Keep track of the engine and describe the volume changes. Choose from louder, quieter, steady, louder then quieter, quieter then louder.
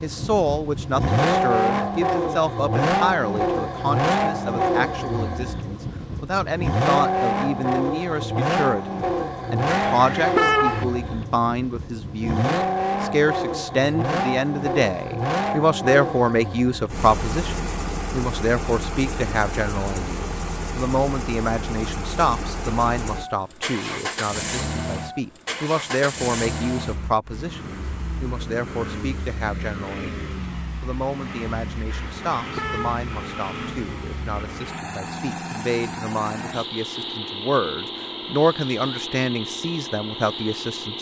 quieter.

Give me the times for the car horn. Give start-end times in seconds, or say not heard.
9.7-10.8, 31.9-33.0.